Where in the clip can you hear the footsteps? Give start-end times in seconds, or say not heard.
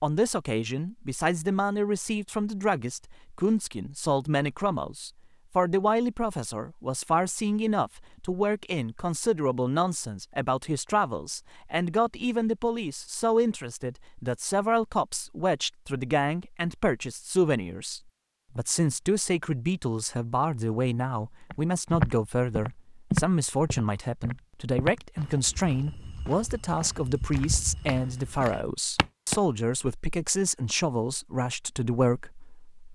21.5-29.4.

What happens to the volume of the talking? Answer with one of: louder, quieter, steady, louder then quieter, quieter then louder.
steady.